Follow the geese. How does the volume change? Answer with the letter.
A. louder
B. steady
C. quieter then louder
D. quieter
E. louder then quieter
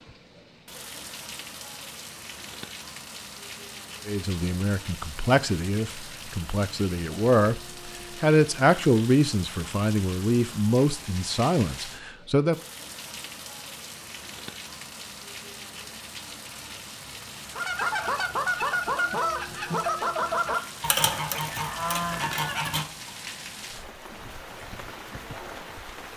B.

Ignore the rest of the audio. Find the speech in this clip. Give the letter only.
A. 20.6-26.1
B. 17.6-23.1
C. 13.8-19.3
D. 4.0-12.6
D.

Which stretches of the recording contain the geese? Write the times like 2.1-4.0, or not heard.
17.6-23.1.